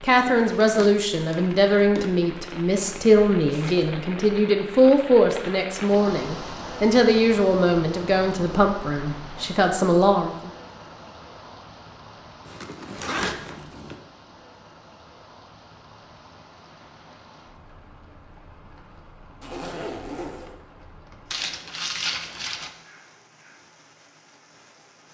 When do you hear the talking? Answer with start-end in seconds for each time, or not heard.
0.0-10.5.